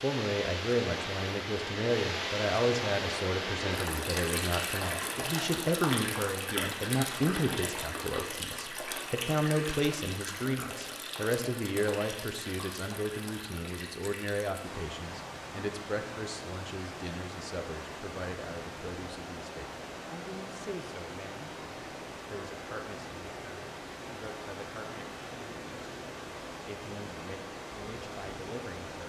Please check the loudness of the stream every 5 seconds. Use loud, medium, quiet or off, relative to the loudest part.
loud, loud, medium, medium, medium, medium.